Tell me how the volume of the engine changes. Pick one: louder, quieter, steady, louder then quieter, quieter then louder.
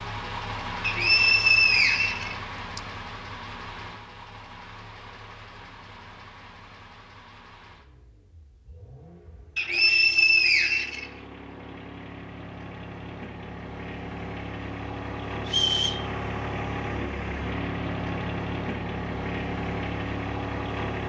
quieter then louder.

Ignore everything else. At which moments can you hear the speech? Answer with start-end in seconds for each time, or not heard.
not heard.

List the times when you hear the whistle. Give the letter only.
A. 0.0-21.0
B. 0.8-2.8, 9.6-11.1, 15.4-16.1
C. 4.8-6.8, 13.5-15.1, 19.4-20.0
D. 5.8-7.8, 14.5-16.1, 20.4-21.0
B.